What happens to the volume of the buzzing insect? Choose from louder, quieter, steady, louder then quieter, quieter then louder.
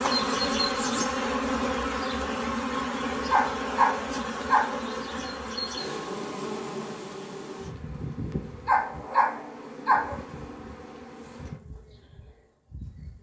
quieter.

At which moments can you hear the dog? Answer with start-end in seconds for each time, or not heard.
3.3-4.8, 8.7-10.2.